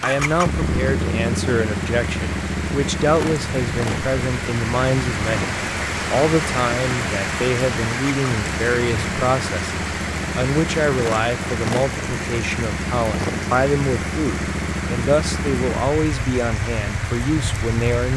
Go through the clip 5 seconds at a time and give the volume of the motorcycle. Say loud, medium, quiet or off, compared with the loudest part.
loud, medium, loud, loud.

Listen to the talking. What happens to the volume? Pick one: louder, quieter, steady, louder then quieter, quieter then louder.
steady.